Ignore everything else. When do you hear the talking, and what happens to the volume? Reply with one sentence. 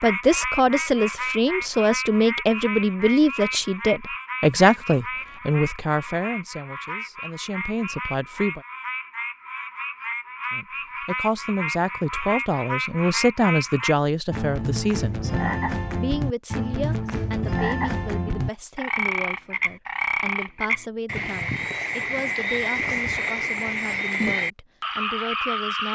The talking can be heard from 0.0 to 8.6 s, getting quieter; and from 10.5 to 25.8 s, getting quieter.